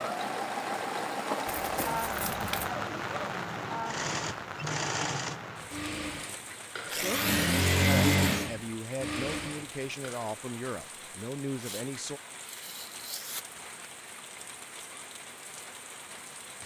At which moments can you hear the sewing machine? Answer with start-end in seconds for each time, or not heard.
0.0-10.2.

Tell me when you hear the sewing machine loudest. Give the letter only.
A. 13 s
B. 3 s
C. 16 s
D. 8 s
D.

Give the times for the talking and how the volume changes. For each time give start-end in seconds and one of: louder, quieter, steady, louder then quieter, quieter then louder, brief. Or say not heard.
6.8-12.2 louder.